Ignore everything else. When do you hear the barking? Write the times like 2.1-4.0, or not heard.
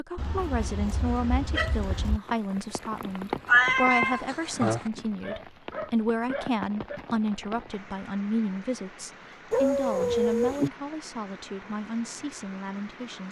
0.1-2.2, 4.5-7.0, 9.5-10.7.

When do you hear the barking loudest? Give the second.
10 s.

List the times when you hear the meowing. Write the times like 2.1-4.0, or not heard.
3.5-4.9.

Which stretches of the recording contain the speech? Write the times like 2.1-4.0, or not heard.
0.0-13.2.